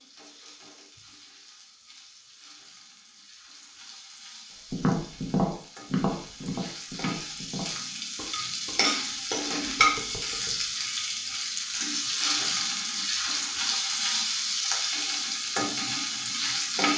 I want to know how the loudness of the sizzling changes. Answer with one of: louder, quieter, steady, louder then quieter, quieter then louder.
louder.